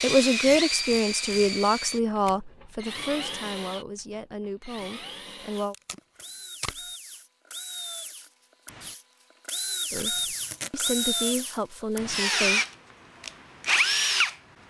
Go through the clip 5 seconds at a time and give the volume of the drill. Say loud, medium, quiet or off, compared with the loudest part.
medium, quiet, loud.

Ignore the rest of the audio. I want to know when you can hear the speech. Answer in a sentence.
The speech can be heard from 0.0 to 5.8 s and from 9.9 to 12.6 s.